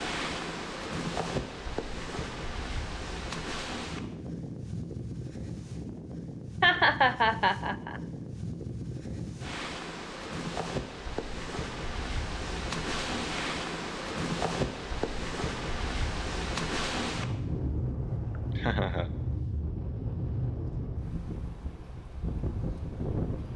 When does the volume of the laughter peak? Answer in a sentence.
The loudest moment of the laughter is at 7 seconds.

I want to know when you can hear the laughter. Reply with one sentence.
You can hear the laughter from 6.6 to 8.0 s and from 18.6 to 19.1 s.